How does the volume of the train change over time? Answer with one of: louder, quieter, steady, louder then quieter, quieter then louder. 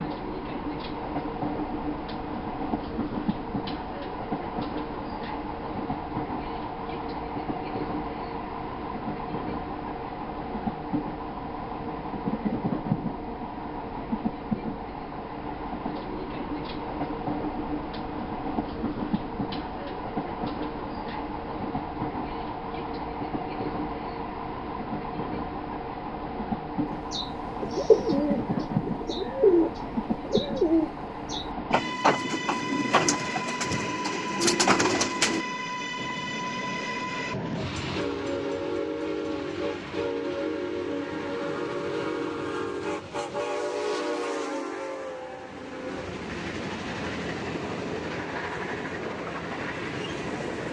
steady.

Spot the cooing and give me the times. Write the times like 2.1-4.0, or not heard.
27.1-35.5.